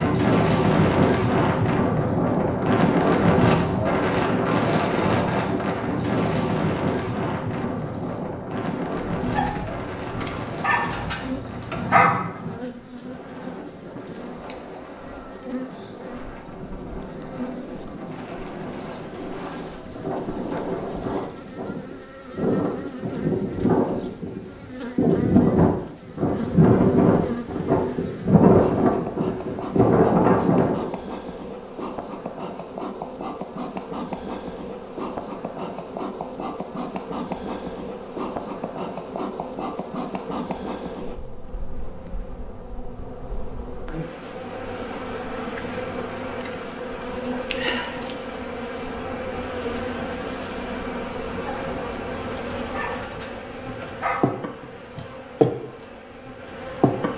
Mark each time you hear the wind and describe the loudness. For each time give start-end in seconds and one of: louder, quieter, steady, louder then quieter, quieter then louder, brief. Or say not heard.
0.0-30.9 quieter then louder.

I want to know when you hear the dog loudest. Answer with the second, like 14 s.
12 s.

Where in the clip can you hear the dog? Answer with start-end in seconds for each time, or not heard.
9.3-12.1, 51.5-54.2.